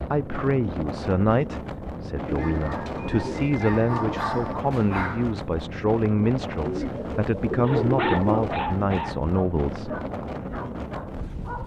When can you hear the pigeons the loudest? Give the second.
8 s.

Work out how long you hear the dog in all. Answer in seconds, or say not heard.
7 s.